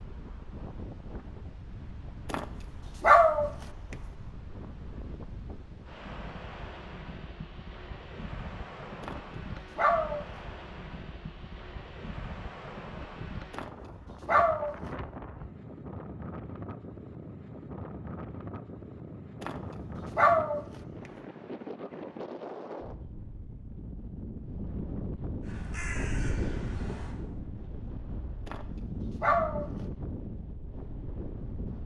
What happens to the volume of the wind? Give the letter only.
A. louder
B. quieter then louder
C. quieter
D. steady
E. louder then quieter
A.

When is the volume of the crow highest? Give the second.
26 s.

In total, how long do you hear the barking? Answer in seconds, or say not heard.
7 s.